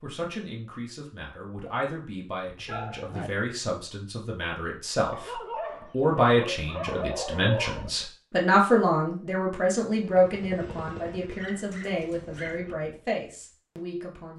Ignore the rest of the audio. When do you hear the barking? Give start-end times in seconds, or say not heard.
2.5-3.3, 5.1-7.9, 11.3-12.8.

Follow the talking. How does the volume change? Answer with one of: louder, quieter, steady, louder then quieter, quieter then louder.
louder then quieter.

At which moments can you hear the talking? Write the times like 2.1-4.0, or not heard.
0.0-14.3.